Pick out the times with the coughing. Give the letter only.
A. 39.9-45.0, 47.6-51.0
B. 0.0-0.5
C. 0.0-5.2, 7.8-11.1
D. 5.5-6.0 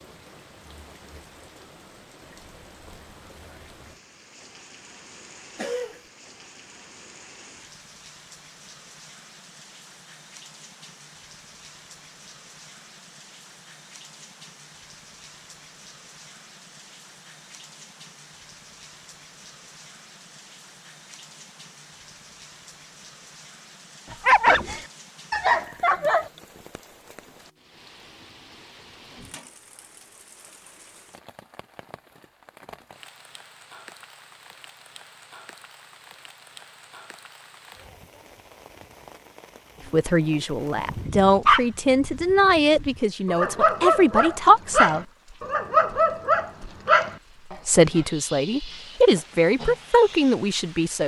D.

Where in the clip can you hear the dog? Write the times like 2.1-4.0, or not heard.
24.1-26.3, 40.8-50.1.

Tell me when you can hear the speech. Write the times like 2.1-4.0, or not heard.
39.9-45.0, 47.6-51.0.